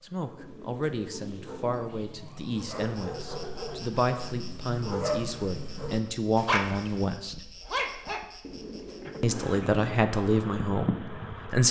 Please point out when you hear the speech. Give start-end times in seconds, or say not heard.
0.0-7.3, 9.2-11.6.